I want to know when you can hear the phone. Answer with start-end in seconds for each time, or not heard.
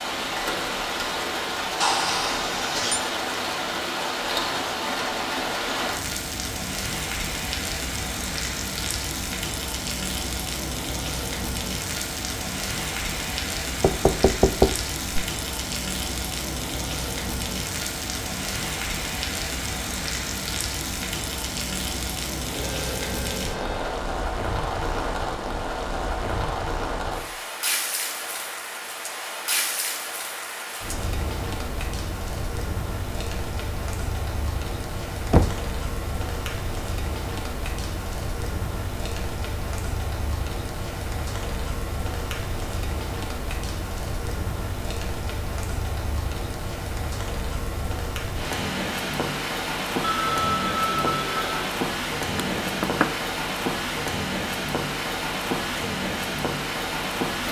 1.8-3.0, 22.5-23.9, 50.0-51.8.